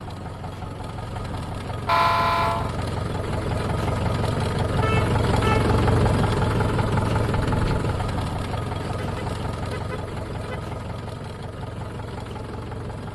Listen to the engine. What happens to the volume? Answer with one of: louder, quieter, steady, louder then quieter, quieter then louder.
louder then quieter.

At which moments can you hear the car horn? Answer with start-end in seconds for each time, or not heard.
1.9-2.7, 4.8-5.8, 8.9-10.6.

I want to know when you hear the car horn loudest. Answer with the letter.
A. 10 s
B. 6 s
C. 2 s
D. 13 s
C.